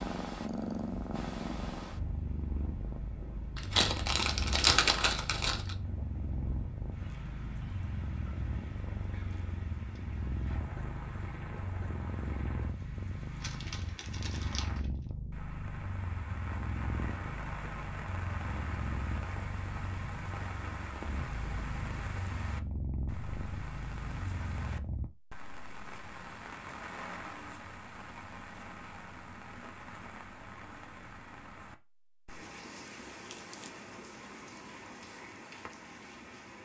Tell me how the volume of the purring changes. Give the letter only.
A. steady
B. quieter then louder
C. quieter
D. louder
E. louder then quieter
A.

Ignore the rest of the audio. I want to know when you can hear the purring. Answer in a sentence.
The purring can be heard from 0.0 to 25.1 s.